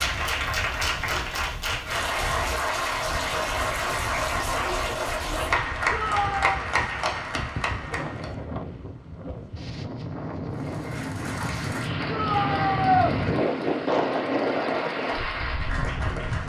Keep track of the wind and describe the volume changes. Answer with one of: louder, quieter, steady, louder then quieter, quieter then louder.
louder.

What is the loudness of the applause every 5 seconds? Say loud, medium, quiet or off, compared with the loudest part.
loud, loud, medium, medium.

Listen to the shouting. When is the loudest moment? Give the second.
13 s.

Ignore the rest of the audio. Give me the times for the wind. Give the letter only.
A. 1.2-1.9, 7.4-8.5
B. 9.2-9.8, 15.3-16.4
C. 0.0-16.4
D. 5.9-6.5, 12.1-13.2
C.